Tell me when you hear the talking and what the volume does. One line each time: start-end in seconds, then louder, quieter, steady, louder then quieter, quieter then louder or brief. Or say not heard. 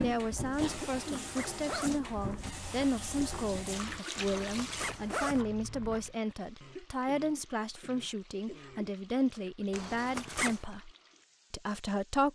0.0-10.9 steady
11.5-12.3 brief.